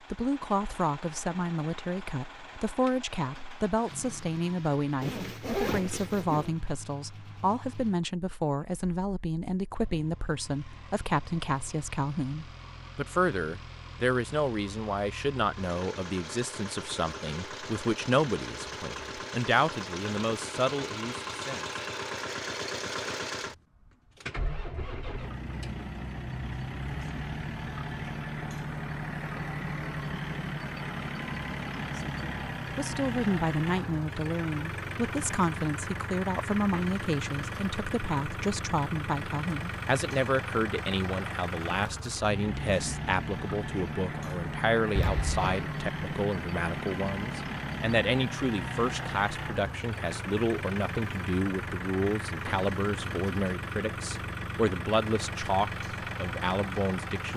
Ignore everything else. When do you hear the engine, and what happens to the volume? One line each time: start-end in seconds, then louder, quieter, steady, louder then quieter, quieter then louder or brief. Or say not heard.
0.0-57.3 louder.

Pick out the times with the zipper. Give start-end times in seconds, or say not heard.
5.0-6.5, 45.0-45.6.